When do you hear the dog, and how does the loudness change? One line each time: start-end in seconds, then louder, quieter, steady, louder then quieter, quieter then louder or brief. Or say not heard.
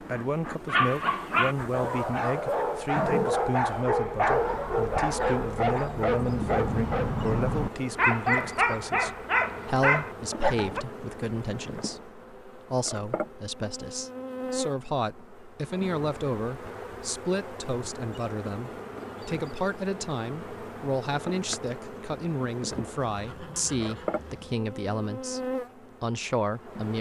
0.7-10.8 steady.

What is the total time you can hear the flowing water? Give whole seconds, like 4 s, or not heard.
not heard.